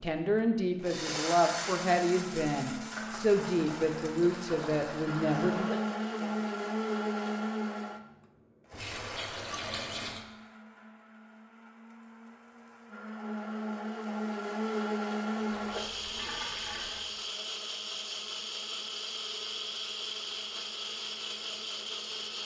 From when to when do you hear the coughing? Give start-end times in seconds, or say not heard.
5.5-6.3, 15.3-16.4.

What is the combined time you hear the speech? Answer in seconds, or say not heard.
6 s.